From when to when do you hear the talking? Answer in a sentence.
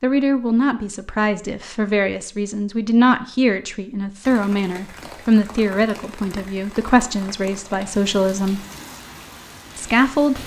You can hear the talking from 0.0 to 8.6 s and from 9.8 to 10.4 s.